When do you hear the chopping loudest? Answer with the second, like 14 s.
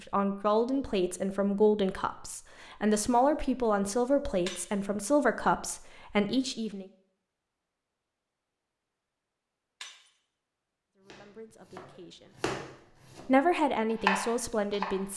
14 s.